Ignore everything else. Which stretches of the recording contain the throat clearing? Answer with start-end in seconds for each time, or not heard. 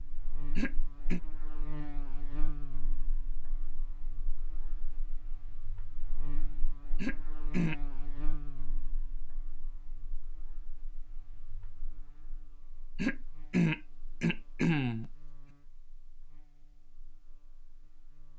0.6-1.2, 7.0-7.8, 12.9-15.1.